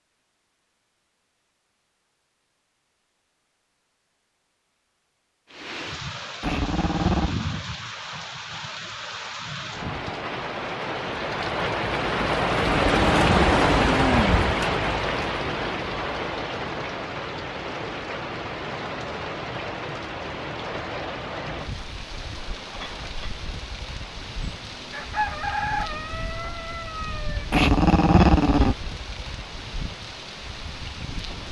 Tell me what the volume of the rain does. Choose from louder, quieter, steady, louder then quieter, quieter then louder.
louder then quieter.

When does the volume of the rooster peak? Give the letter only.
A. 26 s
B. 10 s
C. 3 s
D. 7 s
A.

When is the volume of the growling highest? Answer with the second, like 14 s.
28 s.